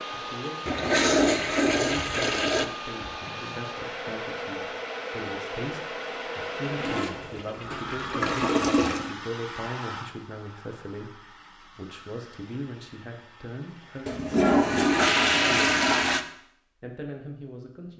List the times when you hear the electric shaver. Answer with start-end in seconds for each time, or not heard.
not heard.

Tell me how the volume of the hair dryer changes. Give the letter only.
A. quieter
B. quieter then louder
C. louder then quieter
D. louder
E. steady
A.